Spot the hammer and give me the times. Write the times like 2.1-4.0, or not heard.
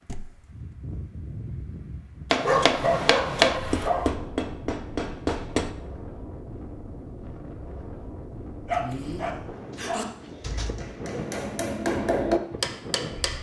2.3-5.7, 10.6-13.3.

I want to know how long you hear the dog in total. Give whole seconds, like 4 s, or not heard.
3 s.